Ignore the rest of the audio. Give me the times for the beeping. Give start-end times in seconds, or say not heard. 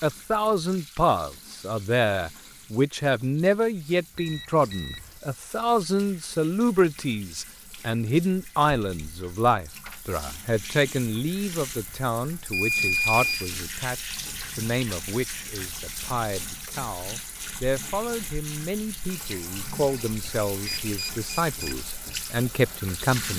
4.2-5.2, 12.5-13.6, 20.6-21.8.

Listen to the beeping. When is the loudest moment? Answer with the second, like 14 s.
13 s.